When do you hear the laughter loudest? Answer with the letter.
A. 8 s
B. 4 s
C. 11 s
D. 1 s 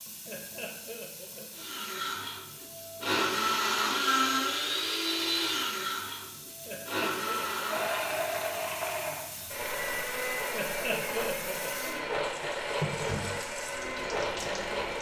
C.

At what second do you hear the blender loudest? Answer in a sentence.
The volume of the blender peaks at 4 seconds.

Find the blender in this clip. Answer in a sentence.
You can hear the blender from 1.5 to 14.9 s.